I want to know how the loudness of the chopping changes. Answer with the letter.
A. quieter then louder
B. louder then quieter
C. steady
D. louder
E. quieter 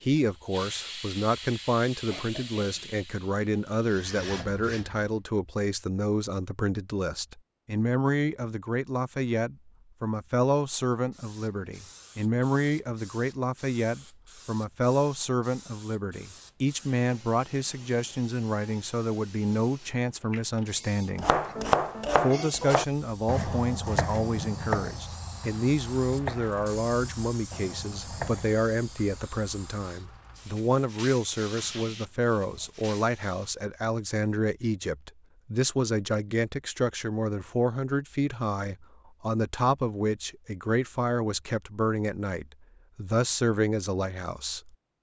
E.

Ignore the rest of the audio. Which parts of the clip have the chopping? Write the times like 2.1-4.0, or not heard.
21.1-28.6.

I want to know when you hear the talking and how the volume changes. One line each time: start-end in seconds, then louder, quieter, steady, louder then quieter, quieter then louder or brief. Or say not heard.
0.0-21.4 steady
22.1-44.7 steady.